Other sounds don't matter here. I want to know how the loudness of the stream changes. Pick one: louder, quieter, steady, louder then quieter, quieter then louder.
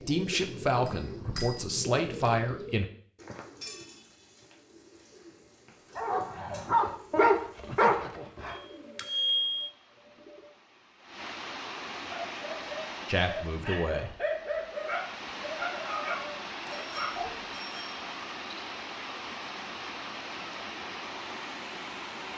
louder.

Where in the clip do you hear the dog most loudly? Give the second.
7 s.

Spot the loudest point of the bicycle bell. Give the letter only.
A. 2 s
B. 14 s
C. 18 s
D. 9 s
D.